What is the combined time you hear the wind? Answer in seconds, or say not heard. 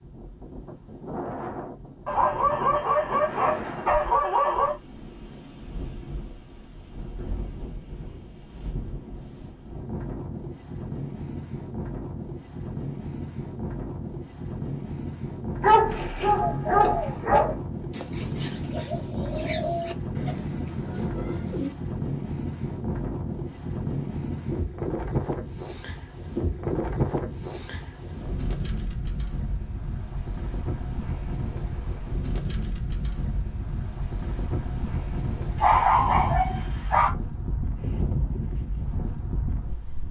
40 s.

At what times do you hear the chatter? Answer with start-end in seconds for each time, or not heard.
not heard.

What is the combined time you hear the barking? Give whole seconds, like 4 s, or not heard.
6 s.